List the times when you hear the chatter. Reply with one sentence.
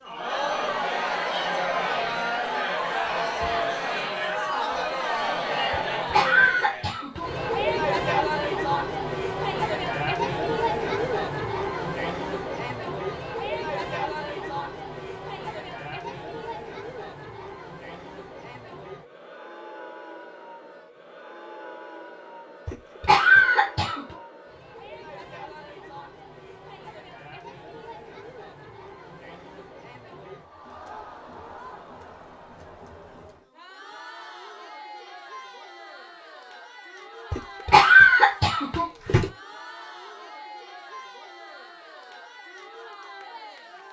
You can hear the chatter from 0.0 to 43.8 s.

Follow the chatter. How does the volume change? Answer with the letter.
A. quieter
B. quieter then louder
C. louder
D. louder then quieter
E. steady
A.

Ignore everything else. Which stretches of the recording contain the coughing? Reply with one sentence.
The coughing can be heard from 5.7 to 7.3 s, from 22.6 to 24.1 s and from 37.3 to 39.3 s.